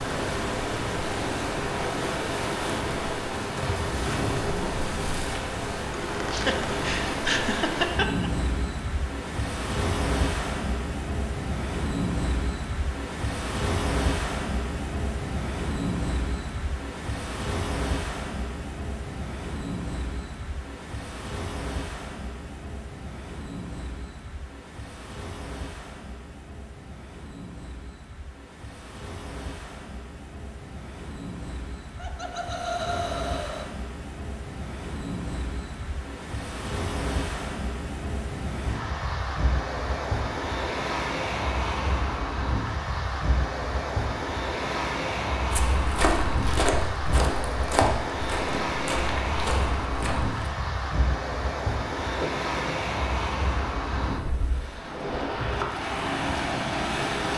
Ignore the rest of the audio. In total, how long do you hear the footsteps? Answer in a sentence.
The footsteps can be heard for 5 seconds in total.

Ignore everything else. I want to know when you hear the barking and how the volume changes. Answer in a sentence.
You can't hear the barking here.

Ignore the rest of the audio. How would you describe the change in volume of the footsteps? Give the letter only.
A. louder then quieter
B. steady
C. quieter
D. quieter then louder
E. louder
C.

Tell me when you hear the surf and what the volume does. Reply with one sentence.
You can hear the surf from 0.0 to 57.3 s, getting quieter then louder.